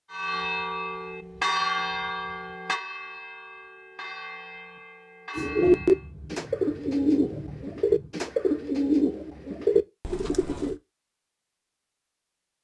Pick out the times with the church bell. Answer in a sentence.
The church bell can be heard from 0.1 to 6.1 s.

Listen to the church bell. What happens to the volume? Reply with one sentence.
The loudness of the church bell goes down.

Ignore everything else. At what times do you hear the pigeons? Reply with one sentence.
You can hear the pigeons from 5.3 to 10.8 s.